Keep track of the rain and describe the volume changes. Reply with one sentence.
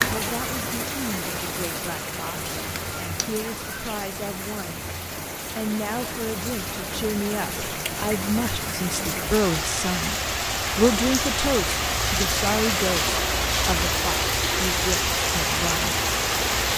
The volume of the rain goes up.